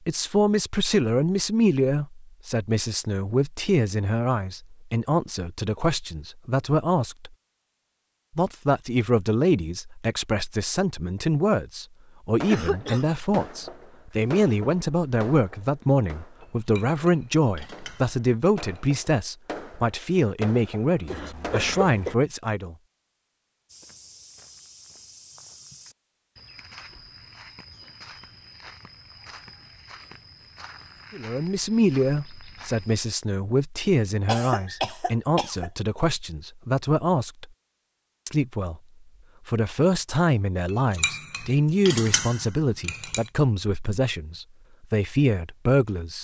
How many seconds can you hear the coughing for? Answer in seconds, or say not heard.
3 s.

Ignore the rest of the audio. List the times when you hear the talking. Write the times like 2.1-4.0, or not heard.
0.1-7.3, 8.3-22.8, 31.1-37.5, 38.2-38.8, 39.5-46.1.